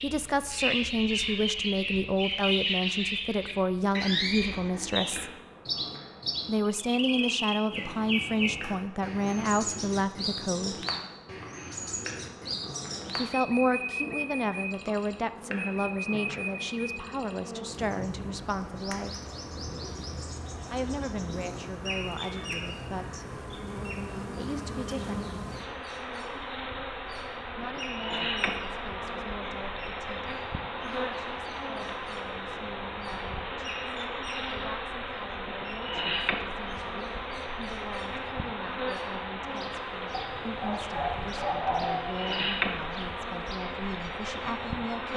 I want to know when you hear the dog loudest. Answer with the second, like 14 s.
42 s.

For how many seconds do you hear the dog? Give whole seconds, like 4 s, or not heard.
2 s.